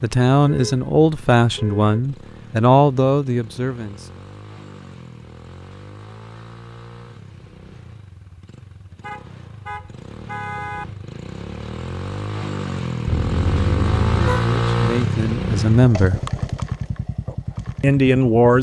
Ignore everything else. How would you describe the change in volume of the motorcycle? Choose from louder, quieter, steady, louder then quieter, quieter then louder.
louder.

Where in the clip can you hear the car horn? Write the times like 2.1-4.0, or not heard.
0.5-2.0, 9.0-10.8, 13.1-14.5.